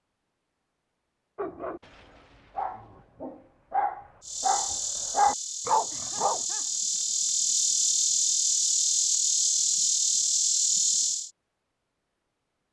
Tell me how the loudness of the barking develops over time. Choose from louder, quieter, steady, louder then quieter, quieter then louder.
louder.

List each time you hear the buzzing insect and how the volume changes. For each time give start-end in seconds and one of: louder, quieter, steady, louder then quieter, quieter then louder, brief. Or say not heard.
4.2-11.3 louder.